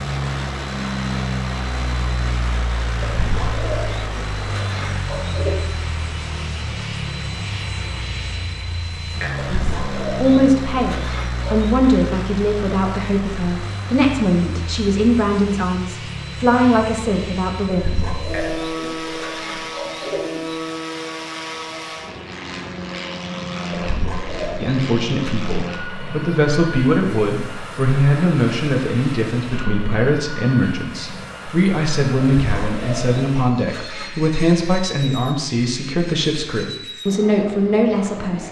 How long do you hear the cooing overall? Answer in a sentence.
You can hear the cooing for 11 seconds altogether.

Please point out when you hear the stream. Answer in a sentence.
The stream can't be heard in this clip.